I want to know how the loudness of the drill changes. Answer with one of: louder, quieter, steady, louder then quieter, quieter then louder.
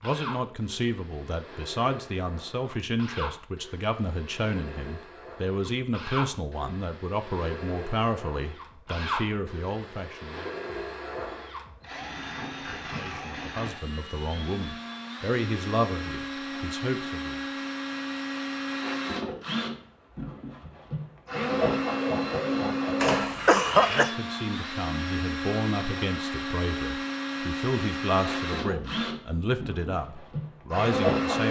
louder.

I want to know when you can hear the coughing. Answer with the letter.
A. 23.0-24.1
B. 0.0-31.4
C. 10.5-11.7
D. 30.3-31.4
A.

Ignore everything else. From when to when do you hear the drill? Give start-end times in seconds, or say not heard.
0.0-31.4.